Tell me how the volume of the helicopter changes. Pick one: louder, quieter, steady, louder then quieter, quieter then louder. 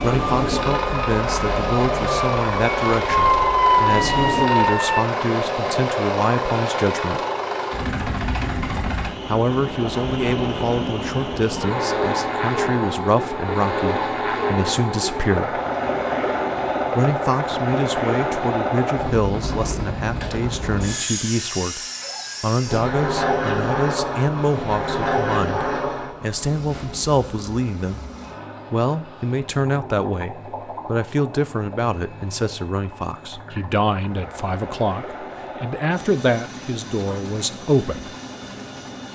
quieter.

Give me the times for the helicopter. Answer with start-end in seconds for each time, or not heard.
0.0-39.0.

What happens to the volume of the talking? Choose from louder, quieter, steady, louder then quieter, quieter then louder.
steady.